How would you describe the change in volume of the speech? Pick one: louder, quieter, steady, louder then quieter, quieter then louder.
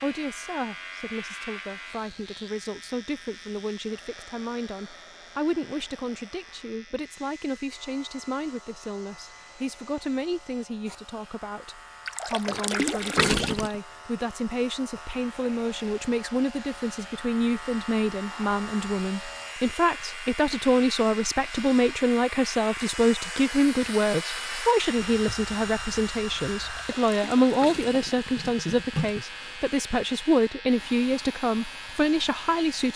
louder.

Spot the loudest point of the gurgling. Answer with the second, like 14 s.
13 s.